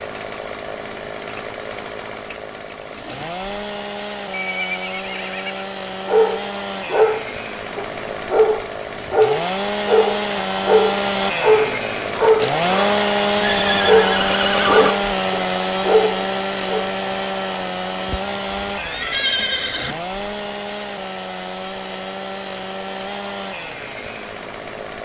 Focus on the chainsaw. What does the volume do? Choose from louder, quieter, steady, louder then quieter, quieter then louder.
louder then quieter.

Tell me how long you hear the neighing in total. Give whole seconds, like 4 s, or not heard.
5 s.